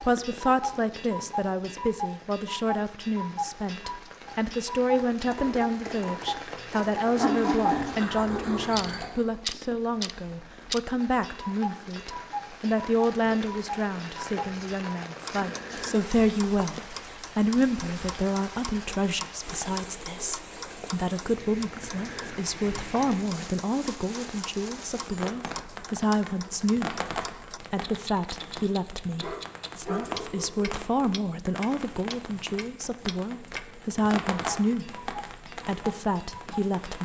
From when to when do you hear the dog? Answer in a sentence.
The dog can be heard from 7.2 to 9.1 s and from 29.2 to 30.8 s.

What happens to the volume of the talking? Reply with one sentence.
The loudness of the talking stays about the same.